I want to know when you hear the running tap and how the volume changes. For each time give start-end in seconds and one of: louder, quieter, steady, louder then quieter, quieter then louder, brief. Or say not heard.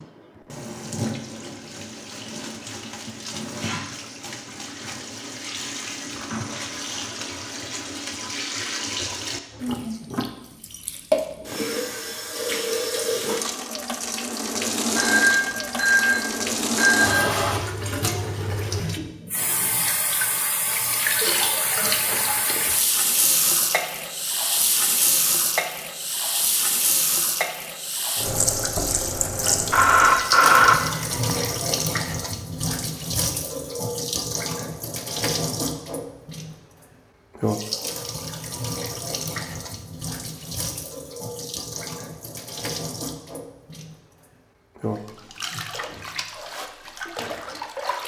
0.0-48.0 louder then quieter.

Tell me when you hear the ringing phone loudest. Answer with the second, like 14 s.
31 s.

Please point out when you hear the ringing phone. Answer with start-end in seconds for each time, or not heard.
14.9-17.4, 29.7-31.8.